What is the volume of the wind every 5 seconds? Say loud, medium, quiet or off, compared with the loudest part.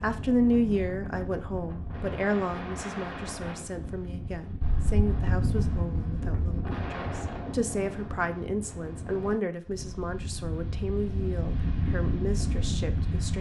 medium, loud, loud.